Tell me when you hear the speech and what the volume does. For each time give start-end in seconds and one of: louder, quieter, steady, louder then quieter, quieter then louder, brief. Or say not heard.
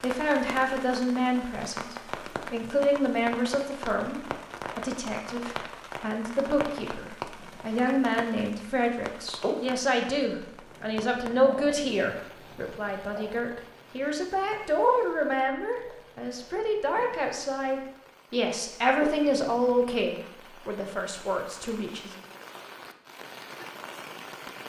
0.0-22.1 steady.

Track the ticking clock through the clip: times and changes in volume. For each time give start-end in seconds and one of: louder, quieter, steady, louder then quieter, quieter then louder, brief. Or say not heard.
not heard.